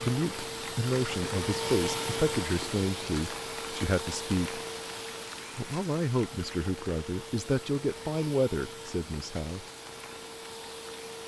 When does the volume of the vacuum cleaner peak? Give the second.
2 s.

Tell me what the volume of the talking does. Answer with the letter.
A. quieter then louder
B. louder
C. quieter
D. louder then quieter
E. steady
E.